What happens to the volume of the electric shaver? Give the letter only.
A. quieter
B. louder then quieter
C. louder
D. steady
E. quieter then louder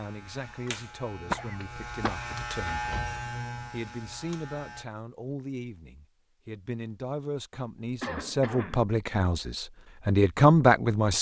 B.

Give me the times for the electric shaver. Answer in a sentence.
The electric shaver can be heard from 0.0 to 4.8 s.